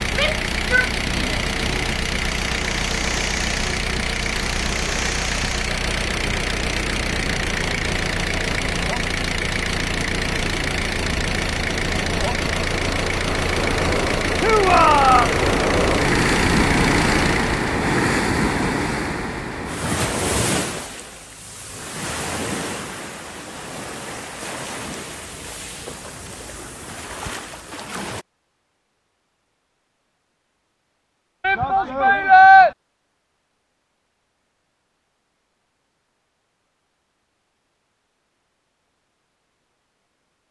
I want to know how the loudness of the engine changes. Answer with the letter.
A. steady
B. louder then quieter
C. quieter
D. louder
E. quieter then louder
A.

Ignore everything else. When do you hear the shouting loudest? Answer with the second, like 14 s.
32 s.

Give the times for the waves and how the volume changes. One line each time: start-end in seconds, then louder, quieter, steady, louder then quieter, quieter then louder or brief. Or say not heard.
0.0-28.2 louder then quieter.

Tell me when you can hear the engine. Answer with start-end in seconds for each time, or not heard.
0.0-17.7.